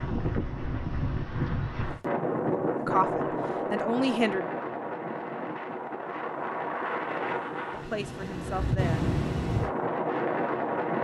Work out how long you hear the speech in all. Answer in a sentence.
The speech can be heard for 3 seconds in total.